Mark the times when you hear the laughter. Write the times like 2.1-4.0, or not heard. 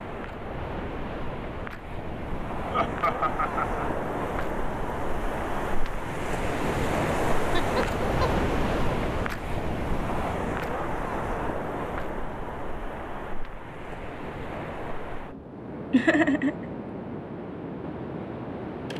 2.7-3.9, 7.5-8.3, 15.9-16.5.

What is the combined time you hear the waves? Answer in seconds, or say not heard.
19 s.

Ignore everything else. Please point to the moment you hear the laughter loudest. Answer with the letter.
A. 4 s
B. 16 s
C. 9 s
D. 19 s
B.